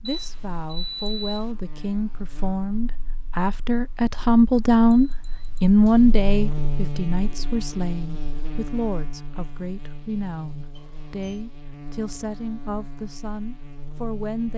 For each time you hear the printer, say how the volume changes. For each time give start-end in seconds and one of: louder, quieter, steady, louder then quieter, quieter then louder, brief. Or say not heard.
not heard.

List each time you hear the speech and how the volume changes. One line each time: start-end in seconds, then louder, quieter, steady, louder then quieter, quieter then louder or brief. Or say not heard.
0.0-14.5 louder then quieter.